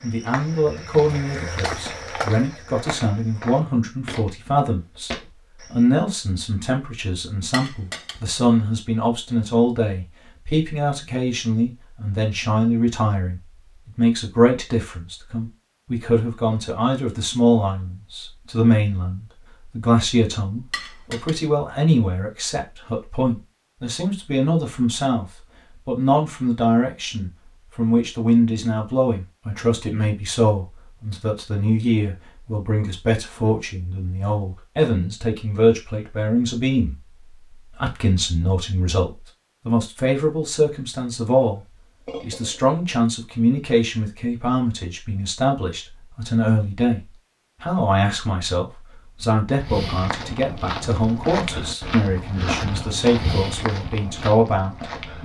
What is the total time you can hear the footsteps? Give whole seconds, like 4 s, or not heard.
11 s.